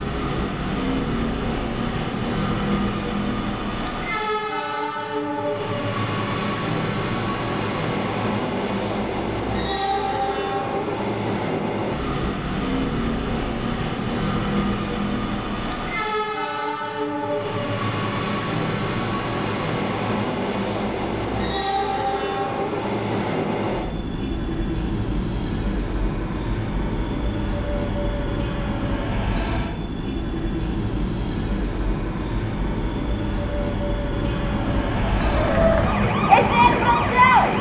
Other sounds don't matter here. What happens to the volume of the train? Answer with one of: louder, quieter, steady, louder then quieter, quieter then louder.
steady.